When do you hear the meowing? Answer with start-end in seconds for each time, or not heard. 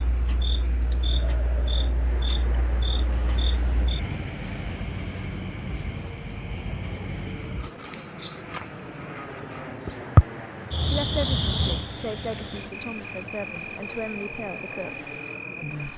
not heard.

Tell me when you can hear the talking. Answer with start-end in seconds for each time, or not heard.
10.8-15.9.